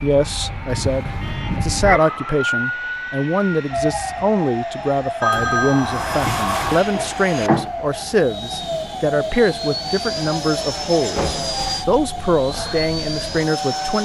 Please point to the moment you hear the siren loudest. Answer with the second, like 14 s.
2 s.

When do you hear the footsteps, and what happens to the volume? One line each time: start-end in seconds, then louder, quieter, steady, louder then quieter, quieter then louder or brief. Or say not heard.
not heard.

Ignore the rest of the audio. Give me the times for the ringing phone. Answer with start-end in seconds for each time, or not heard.
5.2-7.7.